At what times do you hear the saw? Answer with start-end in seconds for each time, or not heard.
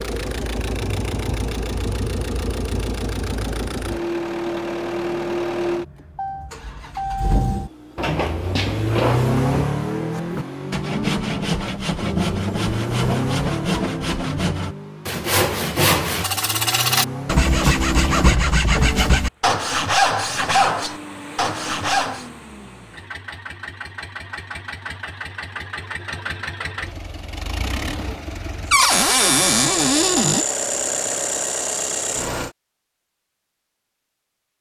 10.1-22.2.